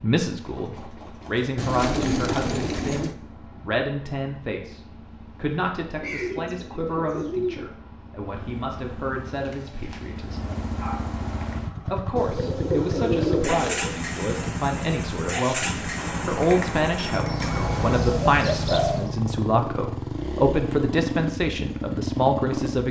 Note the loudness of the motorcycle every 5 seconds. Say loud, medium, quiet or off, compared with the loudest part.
quiet, quiet, loud, loud, loud.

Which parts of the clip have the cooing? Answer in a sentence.
The cooing can be heard from 1.6 to 3.1 s, from 6.0 to 7.7 s, from 12.2 to 13.9 s and from 17.4 to 19.1 s.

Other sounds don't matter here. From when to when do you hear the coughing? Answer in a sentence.
You can't hear the coughing here.